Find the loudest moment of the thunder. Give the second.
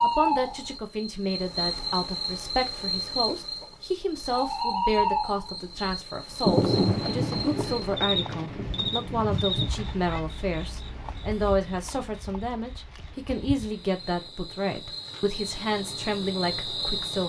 7 s.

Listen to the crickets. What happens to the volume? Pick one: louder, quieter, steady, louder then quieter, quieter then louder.
quieter then louder.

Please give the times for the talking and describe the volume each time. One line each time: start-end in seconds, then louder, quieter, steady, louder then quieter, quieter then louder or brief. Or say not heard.
0.0-17.2 steady.